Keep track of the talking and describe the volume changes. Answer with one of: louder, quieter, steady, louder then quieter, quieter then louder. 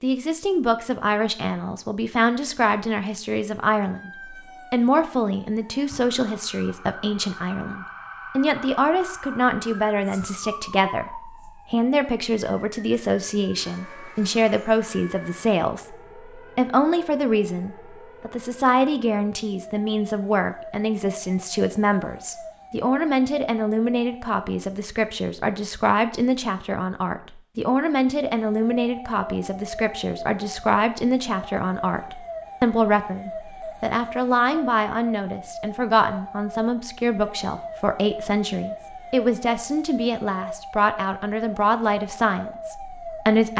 steady.